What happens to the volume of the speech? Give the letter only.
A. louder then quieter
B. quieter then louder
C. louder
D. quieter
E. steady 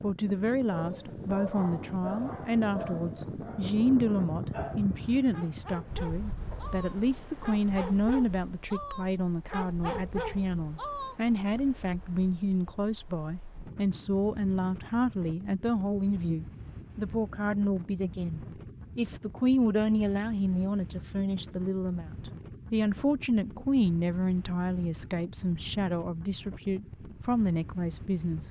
E.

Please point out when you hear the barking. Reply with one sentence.
You can hear the barking from 0.7 to 11.6 s.